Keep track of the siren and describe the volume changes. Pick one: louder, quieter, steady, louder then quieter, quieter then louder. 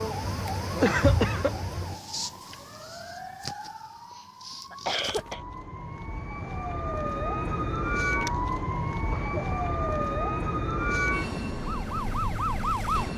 quieter then louder.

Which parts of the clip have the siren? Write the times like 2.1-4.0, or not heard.
0.0-13.1.